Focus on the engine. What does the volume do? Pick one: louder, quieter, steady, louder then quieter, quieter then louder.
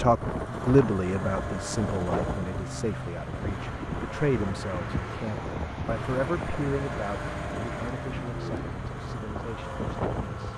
steady.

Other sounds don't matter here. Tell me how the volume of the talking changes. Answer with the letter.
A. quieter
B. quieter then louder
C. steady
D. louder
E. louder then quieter
A.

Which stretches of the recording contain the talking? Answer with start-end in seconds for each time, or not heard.
0.0-10.5.